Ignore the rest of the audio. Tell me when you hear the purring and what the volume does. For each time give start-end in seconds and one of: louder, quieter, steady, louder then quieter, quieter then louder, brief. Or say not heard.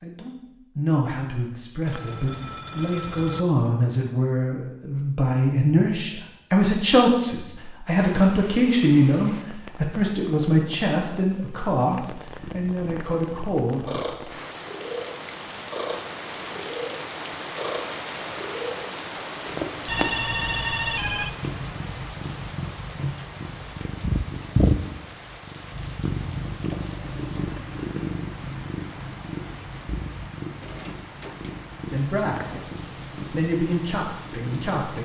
12.3-34.8 louder then quieter.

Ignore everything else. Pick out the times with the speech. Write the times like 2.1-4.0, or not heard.
0.0-13.8, 31.8-35.0.